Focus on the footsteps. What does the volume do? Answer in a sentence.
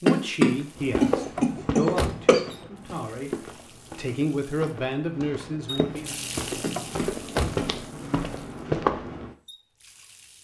The loudness of the footsteps goes down, then up.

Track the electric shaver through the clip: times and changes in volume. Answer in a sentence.
The electric shaver can't be heard in this clip.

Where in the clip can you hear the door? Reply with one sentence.
You can hear the door from 1.4 to 2.7 s and from 6.8 to 8.1 s.